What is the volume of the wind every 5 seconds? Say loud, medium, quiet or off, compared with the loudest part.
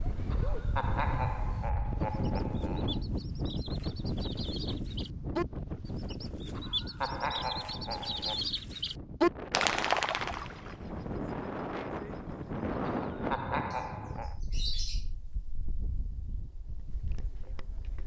loud, medium, loud, quiet.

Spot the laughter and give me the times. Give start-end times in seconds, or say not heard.
0.3-3.0, 6.5-8.4, 13.1-14.3.